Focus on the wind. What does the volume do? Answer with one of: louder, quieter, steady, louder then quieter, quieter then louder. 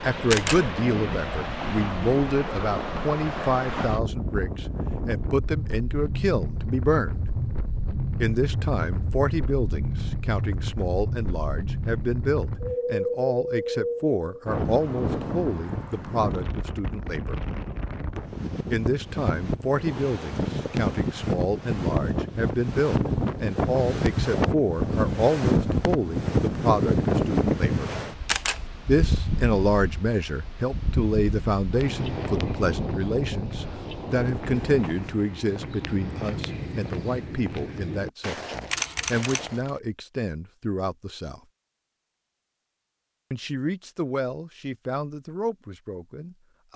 louder then quieter.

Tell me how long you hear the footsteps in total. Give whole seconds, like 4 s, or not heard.
8 s.